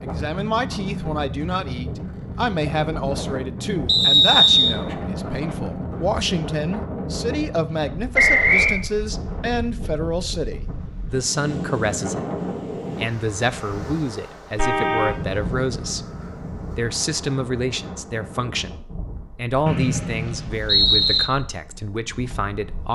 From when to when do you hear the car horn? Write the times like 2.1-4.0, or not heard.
14.6-15.2.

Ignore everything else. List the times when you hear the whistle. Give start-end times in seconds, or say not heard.
3.9-4.8, 8.2-8.8, 19.6-21.2.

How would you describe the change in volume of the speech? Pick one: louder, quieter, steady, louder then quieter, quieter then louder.
steady.